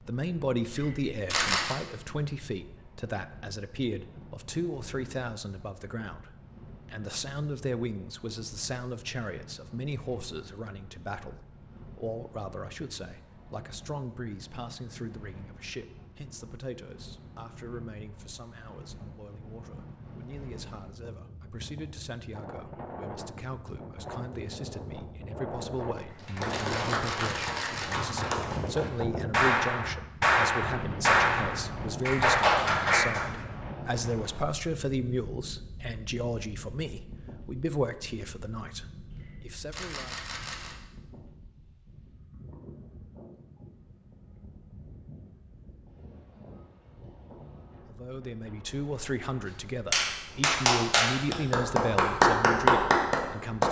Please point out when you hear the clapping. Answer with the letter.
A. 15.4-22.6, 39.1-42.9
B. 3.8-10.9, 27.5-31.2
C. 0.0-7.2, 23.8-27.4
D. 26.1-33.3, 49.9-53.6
D.